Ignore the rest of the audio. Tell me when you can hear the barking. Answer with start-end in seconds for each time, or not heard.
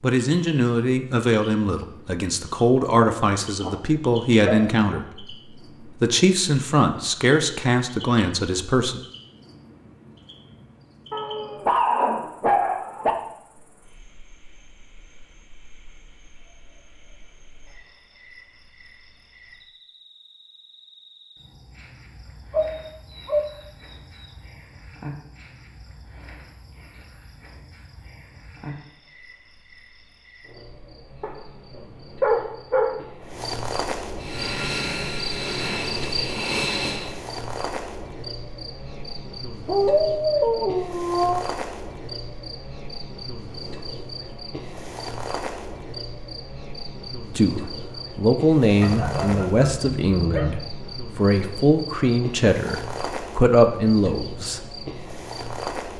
3.1-5.0, 11.1-13.2, 22.5-24.4, 31.2-33.0, 39.6-41.5, 48.8-50.6.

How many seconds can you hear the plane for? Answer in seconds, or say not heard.
3 s.